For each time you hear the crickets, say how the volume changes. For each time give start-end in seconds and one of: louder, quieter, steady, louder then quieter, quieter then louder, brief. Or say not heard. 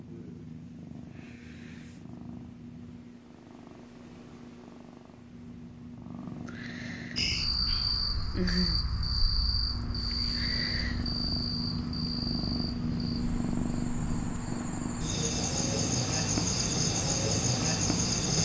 7.2-18.3 quieter then louder.